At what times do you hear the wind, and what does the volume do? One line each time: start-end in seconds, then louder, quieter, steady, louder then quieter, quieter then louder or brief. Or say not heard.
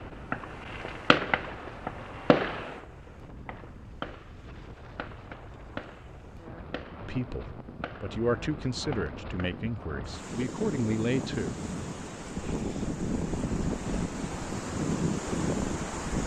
0.0-16.2 louder.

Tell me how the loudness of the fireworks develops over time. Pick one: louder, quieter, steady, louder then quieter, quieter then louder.
quieter.